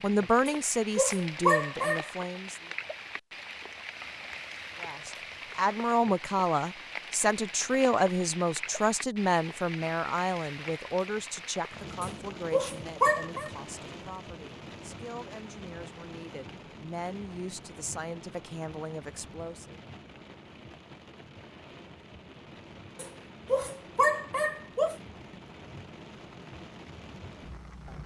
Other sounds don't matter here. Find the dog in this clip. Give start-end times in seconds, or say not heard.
0.5-2.1, 12.0-13.5, 22.9-24.9.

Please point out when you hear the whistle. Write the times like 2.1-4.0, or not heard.
not heard.